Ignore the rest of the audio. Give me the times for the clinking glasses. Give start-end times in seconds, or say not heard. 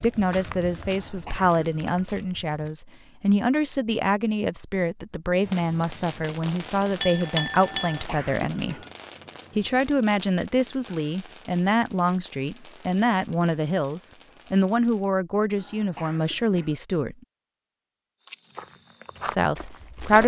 7.0-8.1.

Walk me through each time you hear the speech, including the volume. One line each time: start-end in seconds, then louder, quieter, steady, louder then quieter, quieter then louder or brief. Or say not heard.
0.0-8.8 steady
9.6-17.1 steady
19.2-20.2 brief.